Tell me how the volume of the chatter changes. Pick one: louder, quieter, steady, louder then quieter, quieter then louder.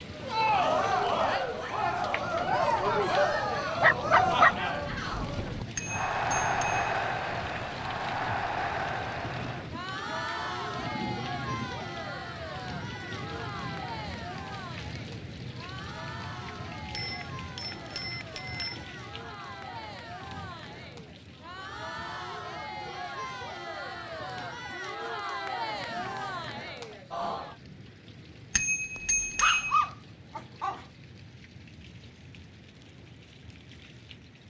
quieter then louder.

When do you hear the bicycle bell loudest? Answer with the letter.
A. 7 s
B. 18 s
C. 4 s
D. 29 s
D.